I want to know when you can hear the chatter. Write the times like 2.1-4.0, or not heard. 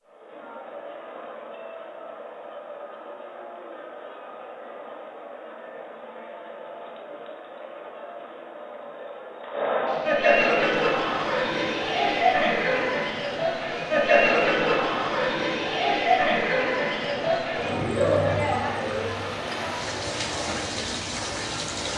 0.0-21.9.